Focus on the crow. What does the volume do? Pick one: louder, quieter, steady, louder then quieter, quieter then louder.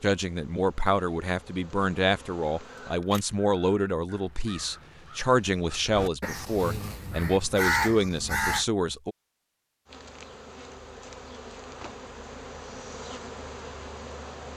louder.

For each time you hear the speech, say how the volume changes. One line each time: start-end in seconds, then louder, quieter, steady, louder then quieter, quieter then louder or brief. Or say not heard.
0.0-9.2 steady.